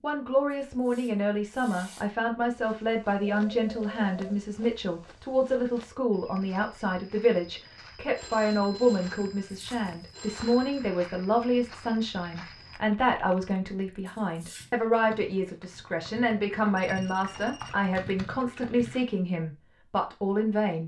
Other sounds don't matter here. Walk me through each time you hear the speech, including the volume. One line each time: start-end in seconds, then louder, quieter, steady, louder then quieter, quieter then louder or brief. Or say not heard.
0.0-20.8 steady.